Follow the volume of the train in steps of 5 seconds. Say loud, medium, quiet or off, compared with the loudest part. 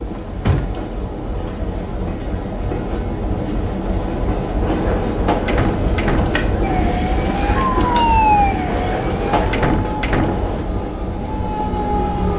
loud, loud, medium.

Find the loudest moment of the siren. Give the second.
8 s.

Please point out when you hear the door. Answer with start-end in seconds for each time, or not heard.
0.2-0.7, 4.6-6.3, 8.7-10.7.